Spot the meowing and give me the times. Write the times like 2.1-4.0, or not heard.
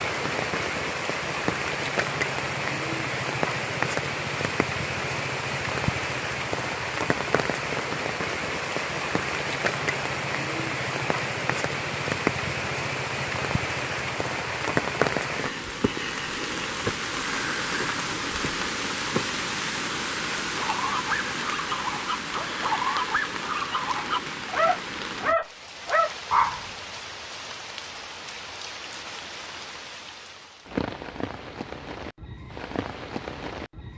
not heard.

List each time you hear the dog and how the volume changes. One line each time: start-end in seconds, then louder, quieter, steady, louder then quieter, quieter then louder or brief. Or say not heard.
20.4-26.6 louder.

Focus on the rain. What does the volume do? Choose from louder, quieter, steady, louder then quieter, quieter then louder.
quieter.